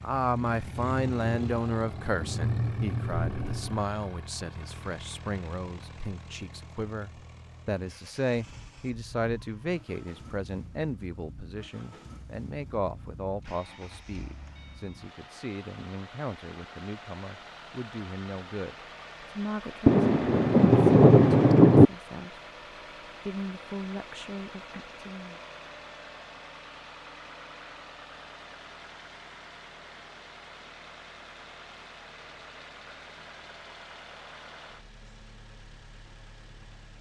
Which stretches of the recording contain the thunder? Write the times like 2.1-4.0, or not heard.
0.4-3.9, 19.9-21.9.